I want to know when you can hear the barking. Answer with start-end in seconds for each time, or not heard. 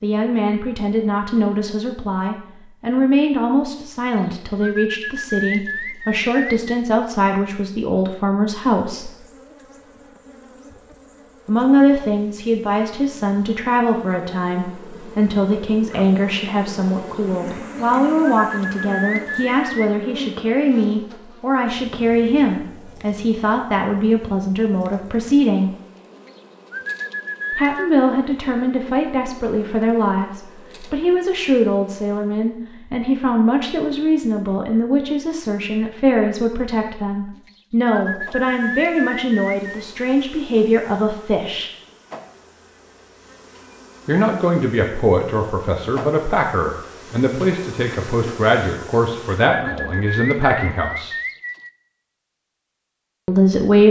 not heard.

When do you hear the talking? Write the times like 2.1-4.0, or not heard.
0.0-9.1, 11.4-25.7, 27.6-41.7, 44.0-51.1, 53.2-53.8.